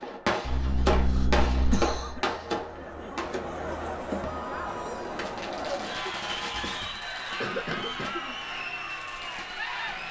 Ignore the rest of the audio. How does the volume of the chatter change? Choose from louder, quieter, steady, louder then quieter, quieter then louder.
louder.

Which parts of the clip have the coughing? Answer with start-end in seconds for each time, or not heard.
0.4-2.2, 6.0-8.3.